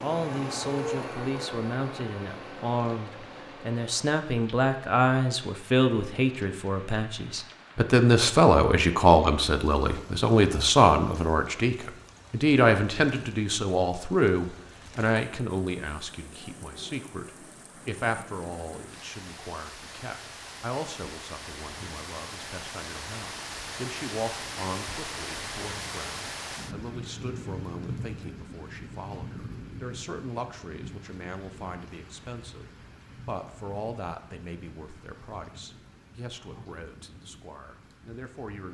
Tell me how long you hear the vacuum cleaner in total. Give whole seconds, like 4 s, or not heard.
4 s.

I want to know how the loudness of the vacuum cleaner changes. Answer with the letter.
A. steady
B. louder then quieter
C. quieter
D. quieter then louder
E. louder
C.